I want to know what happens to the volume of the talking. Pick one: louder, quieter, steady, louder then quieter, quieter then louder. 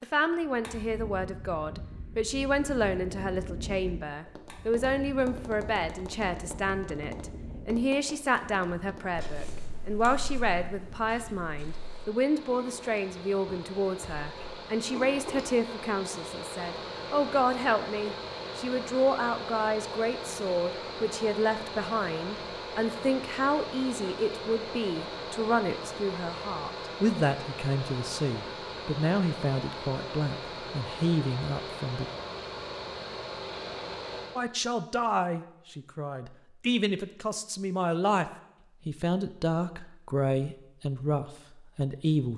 steady.